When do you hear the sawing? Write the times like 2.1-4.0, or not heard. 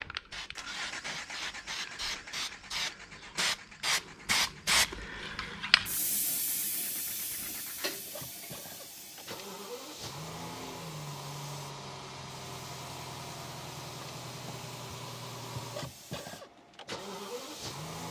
not heard.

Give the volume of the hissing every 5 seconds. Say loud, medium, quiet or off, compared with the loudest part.
loud, medium, quiet, quiet.